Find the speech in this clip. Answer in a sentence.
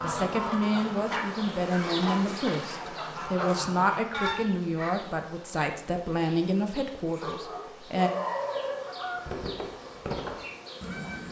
The speech can be heard from 0.0 to 8.1 s.